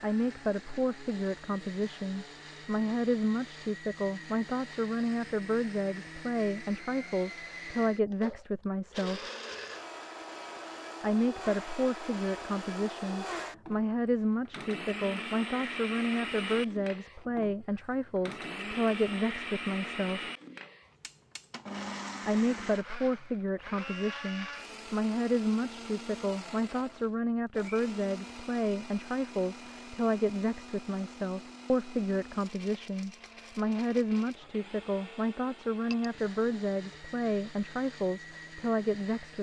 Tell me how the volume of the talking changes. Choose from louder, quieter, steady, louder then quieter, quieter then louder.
steady.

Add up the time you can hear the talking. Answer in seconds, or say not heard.
36 s.